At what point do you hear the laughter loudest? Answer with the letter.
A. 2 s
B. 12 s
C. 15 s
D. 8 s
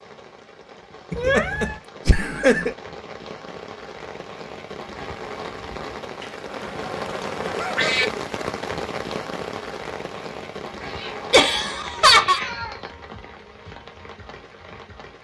B.